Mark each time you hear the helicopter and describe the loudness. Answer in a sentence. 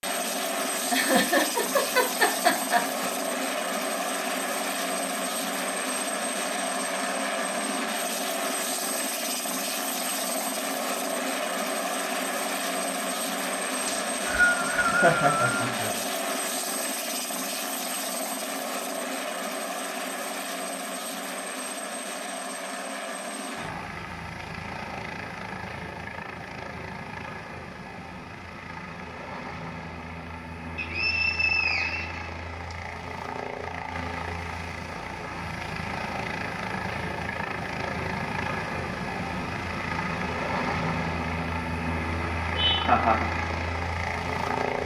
You can hear the helicopter from 0.0 to 44.8 s, getting quieter then louder.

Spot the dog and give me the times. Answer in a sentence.
You can't hear the dog here.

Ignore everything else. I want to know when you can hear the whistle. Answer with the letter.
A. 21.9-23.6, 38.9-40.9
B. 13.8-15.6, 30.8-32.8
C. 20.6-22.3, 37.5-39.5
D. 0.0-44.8
B.